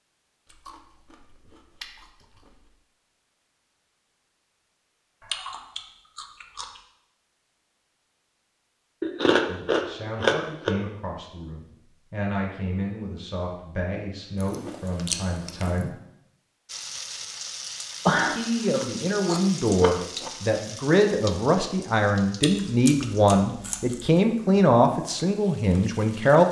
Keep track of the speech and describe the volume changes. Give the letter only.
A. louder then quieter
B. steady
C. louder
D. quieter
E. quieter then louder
C.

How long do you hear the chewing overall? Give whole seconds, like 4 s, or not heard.
11 s.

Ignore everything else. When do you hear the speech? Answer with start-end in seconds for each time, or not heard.
9.4-15.9, 18.1-26.4.